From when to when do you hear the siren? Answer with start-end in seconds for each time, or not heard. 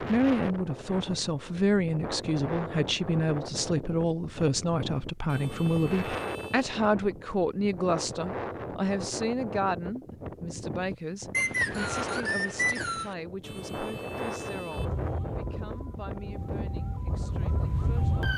14.8-18.3.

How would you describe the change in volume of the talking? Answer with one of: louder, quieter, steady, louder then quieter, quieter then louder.
quieter.